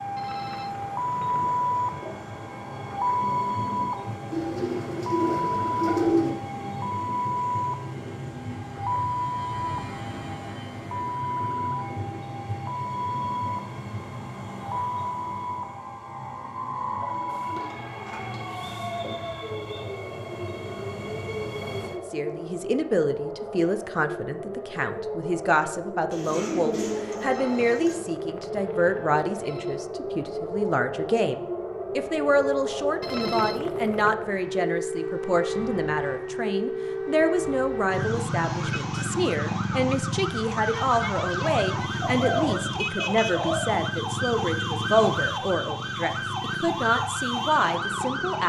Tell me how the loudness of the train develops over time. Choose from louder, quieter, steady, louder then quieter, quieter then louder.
steady.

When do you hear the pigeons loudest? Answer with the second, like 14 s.
6 s.